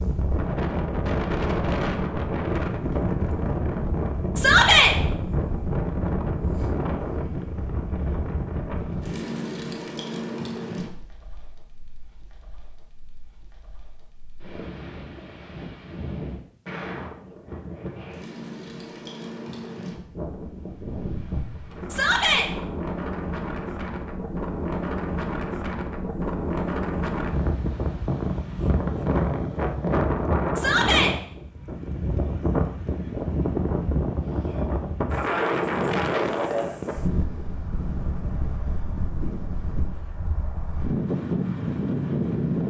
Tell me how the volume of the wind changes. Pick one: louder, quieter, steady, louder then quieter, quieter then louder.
quieter then louder.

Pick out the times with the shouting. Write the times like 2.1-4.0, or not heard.
4.3-5.0, 21.9-22.5, 30.6-31.1.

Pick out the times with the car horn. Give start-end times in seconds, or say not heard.
not heard.